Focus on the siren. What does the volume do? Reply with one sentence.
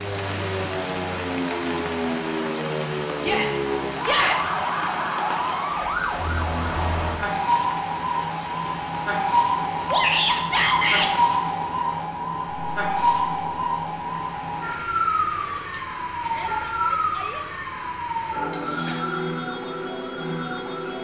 The volume of the siren stays about the same.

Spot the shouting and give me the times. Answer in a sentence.
The shouting can be heard from 3.2 to 4.6 s, from 9.9 to 11.1 s and from 16.2 to 17.4 s.